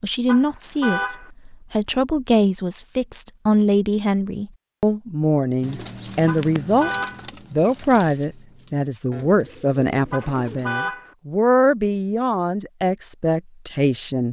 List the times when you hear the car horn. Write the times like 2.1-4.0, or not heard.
0.2-1.3, 6.2-7.3, 10.1-11.2.